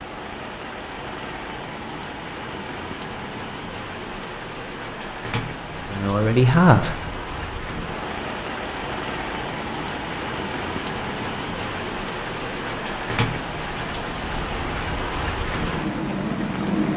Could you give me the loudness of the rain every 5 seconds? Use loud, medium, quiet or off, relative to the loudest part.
medium, medium, loud, loud.